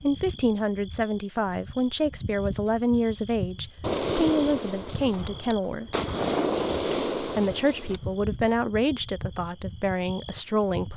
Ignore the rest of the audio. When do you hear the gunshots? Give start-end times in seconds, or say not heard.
3.8-8.0.